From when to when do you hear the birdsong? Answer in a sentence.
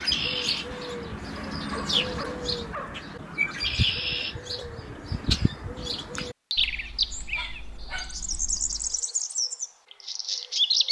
The birdsong can be heard from 0.0 to 10.8 s.